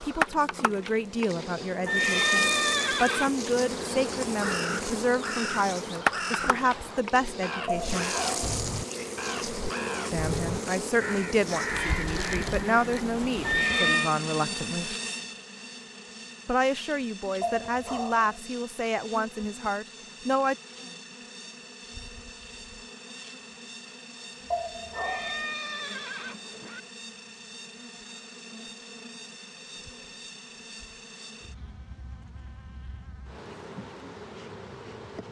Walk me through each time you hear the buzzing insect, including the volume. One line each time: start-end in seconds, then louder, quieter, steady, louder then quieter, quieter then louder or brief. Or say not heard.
0.0-35.2 quieter.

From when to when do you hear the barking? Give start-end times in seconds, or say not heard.
7.7-8.6, 17.4-18.4, 24.5-25.4.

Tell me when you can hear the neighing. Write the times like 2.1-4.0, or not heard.
1.9-3.5, 13.4-14.2, 24.9-26.8.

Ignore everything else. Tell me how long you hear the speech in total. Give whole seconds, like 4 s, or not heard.
17 s.